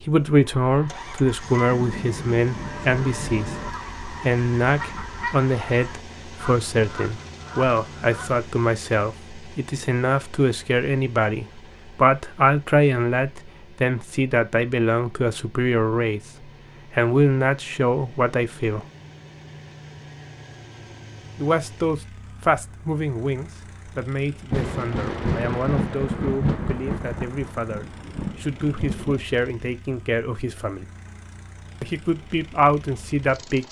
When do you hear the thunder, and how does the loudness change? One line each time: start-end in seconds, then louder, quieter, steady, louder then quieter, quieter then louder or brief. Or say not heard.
1.7-3.7 brief
24.5-29.2 quieter then louder.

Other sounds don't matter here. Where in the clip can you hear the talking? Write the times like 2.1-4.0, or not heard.
0.1-16.2, 16.9-18.9, 21.4-30.9, 31.8-33.6.